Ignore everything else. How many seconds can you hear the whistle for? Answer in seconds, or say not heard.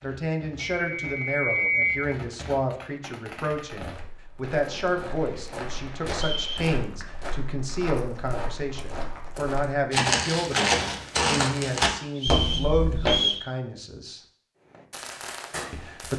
3 s.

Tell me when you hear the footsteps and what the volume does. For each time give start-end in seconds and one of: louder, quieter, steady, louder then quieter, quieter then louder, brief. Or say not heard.
3.8-13.2 louder.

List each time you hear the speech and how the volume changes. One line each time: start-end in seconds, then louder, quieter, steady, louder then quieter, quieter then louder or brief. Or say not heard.
0.0-14.2 steady
15.7-16.1 brief.